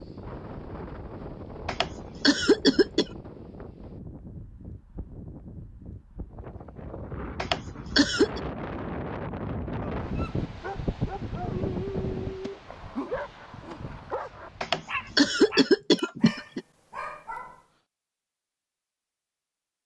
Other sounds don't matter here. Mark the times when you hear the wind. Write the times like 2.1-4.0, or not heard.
0.0-15.8.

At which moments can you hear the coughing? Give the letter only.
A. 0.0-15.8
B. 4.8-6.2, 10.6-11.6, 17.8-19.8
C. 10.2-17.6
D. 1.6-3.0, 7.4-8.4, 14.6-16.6
D.